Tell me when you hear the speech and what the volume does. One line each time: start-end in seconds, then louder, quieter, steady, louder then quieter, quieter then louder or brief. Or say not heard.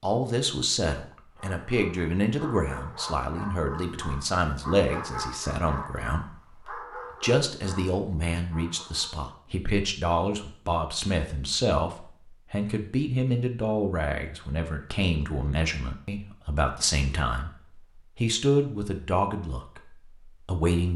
0.0-20.9 steady.